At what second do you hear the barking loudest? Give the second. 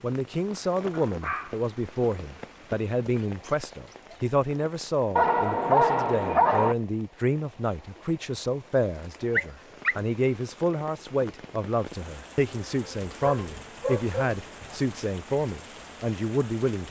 6 s.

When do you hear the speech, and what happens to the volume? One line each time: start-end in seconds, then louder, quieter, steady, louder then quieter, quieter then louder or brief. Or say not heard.
0.0-16.8 steady.